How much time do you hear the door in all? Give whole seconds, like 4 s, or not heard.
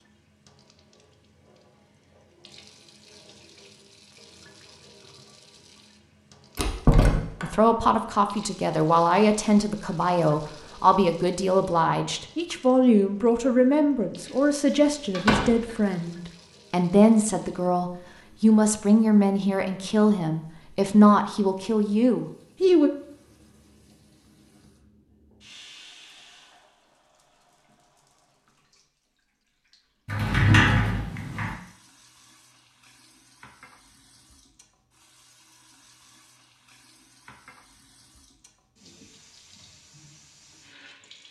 3 s.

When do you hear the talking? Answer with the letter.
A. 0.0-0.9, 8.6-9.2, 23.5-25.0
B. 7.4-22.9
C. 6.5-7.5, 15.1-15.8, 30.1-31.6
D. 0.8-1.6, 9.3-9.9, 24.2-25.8
B.